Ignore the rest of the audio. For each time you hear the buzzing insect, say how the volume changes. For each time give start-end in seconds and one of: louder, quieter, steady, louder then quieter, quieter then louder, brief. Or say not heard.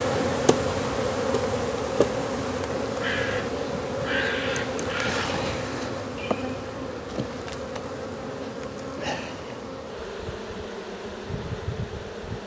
0.0-12.4 quieter.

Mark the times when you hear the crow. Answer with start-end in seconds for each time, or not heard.
3.0-5.4.